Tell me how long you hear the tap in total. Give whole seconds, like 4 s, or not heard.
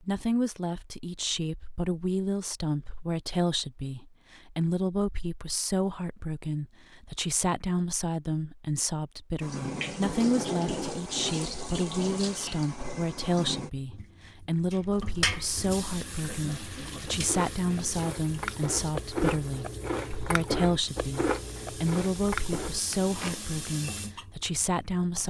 16 s.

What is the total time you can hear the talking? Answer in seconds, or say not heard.
25 s.